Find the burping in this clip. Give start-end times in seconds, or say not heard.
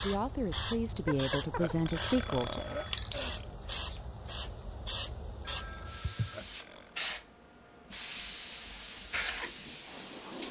1.6-3.5, 6.3-7.0.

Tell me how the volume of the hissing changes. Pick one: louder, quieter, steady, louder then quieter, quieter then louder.
steady.